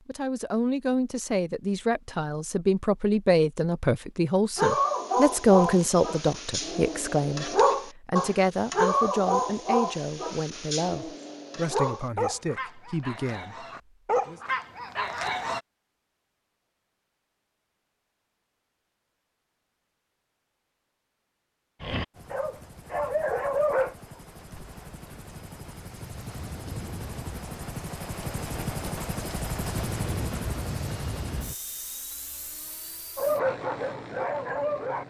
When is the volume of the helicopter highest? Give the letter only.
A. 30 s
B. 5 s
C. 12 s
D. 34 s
A.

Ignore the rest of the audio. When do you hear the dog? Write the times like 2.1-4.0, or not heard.
4.5-15.6, 21.8-23.9, 33.1-35.0.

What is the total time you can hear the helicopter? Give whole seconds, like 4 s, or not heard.
13 s.